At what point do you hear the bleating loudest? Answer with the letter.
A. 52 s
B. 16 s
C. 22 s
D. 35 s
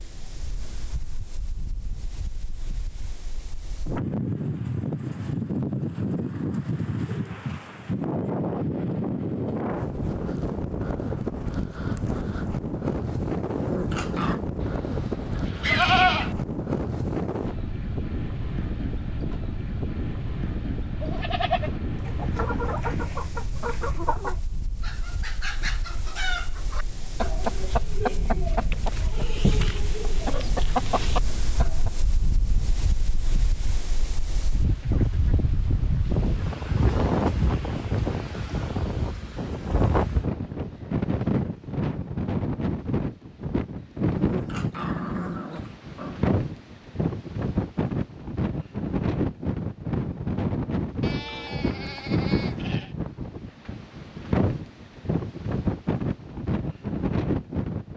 B.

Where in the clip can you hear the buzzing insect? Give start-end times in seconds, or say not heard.
not heard.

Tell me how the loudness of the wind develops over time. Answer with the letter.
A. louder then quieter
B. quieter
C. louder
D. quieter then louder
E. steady
D.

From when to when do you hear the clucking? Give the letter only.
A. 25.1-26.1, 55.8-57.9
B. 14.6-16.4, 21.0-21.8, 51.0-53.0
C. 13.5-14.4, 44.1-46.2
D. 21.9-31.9
D.